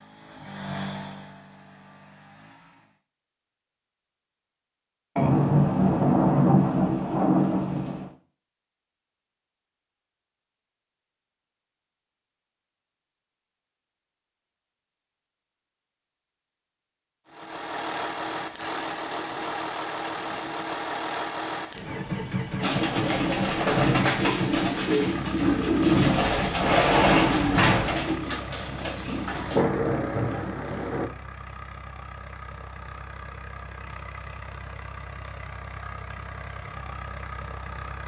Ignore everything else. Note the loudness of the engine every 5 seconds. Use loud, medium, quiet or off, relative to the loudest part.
medium, off, off, loud, loud, medium, medium, medium.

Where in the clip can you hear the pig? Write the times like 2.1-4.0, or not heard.
not heard.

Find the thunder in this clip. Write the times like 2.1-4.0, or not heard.
5.2-8.1, 29.3-31.1.